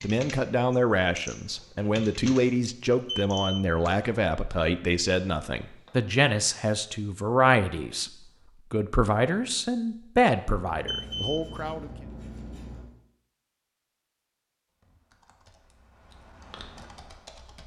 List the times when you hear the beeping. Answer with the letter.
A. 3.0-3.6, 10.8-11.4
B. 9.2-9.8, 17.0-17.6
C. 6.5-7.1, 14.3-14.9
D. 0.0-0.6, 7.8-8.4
A.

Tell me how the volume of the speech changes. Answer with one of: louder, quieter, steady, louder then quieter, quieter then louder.
steady.